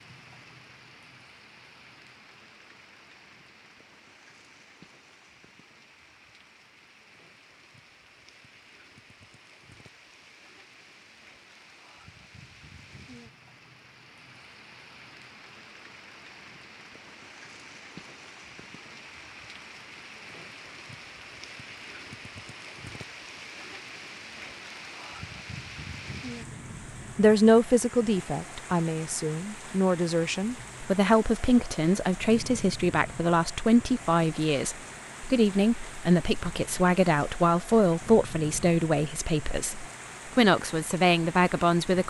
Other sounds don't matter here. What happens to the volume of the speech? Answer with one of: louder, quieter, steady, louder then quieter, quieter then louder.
steady.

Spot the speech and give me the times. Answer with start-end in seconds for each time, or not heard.
27.1-42.0.